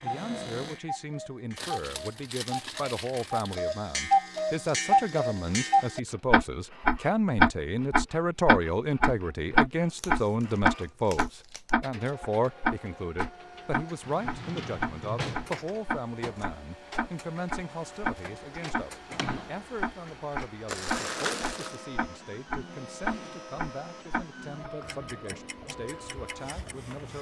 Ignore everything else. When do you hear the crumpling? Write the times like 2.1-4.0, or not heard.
1.6-3.5, 9.9-11.7, 20.6-21.9.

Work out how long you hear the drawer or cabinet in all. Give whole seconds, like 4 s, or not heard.
3 s.